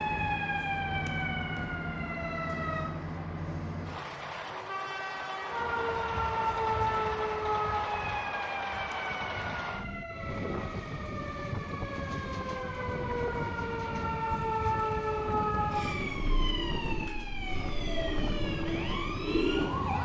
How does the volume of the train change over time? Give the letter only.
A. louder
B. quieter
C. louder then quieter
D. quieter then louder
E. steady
E.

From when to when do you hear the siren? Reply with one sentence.
You can hear the siren from 0.0 to 2.9 s and from 5.5 to 19.9 s.